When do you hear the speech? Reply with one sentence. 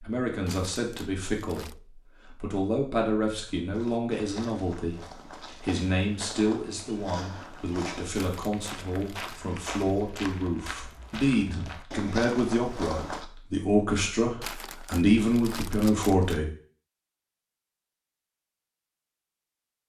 The speech can be heard from 0.0 to 16.4 s.